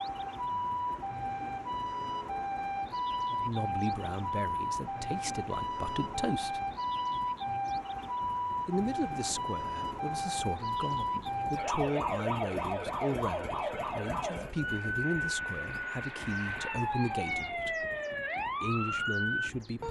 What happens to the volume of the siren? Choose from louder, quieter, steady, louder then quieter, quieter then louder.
steady.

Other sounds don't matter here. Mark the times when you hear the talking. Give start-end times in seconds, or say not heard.
3.3-6.6, 8.7-17.9, 18.6-19.8.